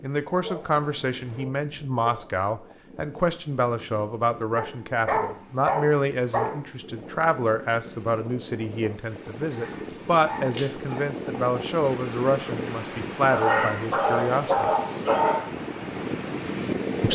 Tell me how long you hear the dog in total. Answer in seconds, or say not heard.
8 s.